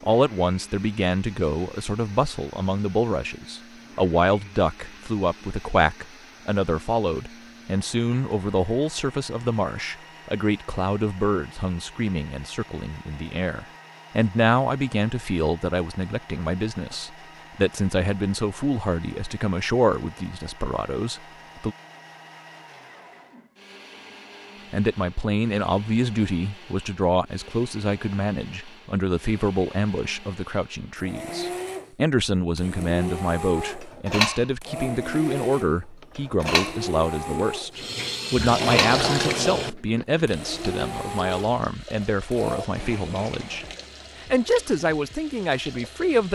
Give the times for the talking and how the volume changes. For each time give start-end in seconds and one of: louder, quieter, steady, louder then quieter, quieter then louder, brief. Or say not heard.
0.0-21.8 steady
24.7-46.3 steady.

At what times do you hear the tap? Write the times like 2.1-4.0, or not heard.
37.8-46.3.